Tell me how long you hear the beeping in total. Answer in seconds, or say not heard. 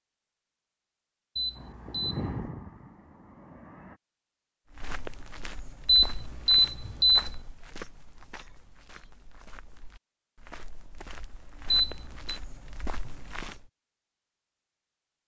3 s.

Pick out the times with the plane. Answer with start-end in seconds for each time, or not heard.
1.6-4.0.